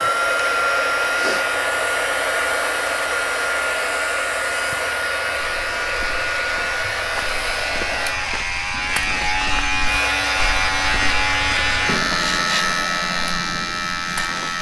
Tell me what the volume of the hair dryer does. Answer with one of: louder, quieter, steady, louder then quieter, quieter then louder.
quieter.